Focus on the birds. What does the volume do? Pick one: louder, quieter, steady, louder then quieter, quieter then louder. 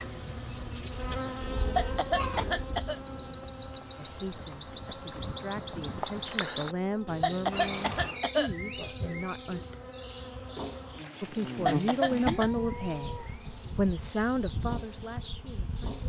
louder then quieter.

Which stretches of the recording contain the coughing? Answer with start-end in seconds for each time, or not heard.
1.8-3.0, 7.2-8.5, 11.7-12.5.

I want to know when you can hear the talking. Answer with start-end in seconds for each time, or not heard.
4.0-9.6, 11.2-16.0.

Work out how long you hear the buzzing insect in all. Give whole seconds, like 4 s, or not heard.
16 s.